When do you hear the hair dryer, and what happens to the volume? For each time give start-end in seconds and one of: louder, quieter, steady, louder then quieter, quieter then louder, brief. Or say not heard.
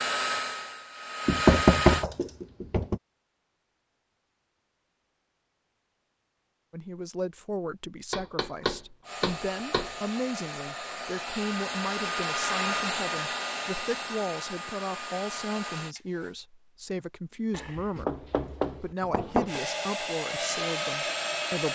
0.0-2.0 brief
9.0-16.4 louder then quieter
19.4-21.6 brief.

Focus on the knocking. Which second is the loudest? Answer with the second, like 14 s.
2 s.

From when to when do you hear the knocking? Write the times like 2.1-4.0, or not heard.
1.2-3.0, 8.1-9.9, 17.5-19.6.